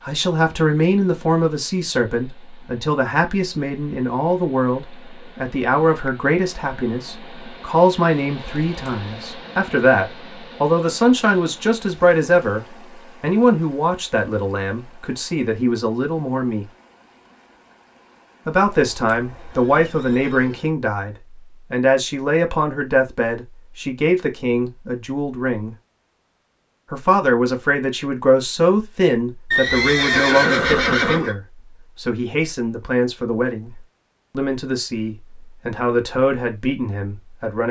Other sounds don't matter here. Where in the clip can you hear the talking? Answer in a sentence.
The talking can be heard from 0.1 to 16.6 s, from 18.4 to 25.8 s and from 26.9 to 37.6 s.